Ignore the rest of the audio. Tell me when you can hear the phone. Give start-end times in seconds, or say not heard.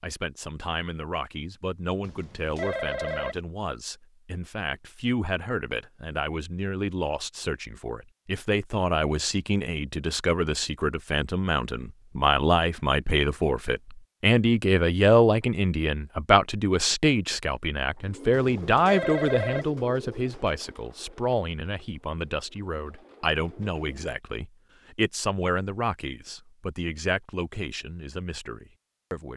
2.0-3.4, 18.3-19.7.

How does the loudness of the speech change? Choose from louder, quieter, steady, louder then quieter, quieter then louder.
louder then quieter.